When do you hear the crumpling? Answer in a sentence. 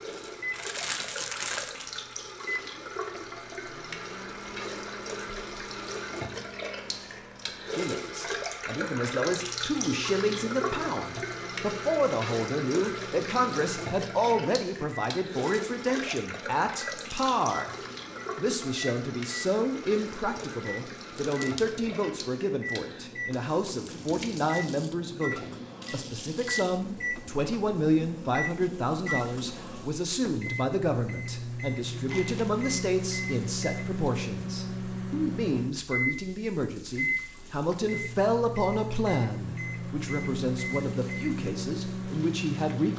You can hear the crumpling from 0.5 to 1.9 s, from 21.1 to 21.7 s and from 31.9 to 32.6 s.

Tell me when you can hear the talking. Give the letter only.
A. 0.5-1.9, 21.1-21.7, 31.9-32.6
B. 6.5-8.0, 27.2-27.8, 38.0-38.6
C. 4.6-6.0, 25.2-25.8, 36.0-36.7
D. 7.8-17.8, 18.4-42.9
D.